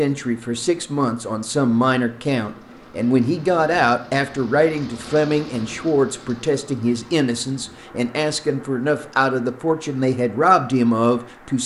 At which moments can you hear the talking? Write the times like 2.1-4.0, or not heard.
0.0-11.6.